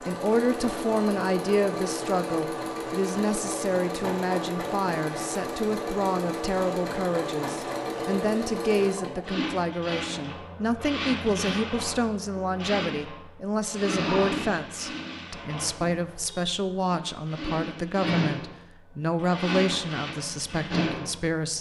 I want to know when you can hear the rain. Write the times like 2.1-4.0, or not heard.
not heard.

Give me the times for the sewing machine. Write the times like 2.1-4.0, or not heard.
0.0-21.5.